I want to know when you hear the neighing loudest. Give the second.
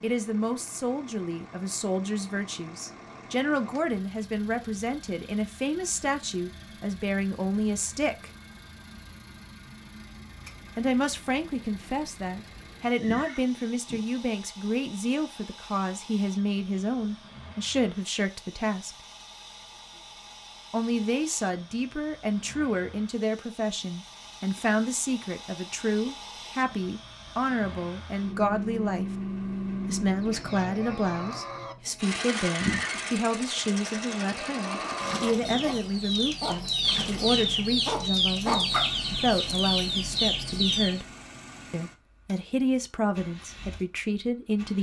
33 s.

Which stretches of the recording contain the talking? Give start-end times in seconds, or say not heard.
0.0-8.3, 10.8-18.9, 20.7-29.1, 29.9-41.0, 41.7-44.7.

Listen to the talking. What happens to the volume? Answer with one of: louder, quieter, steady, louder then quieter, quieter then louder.
steady.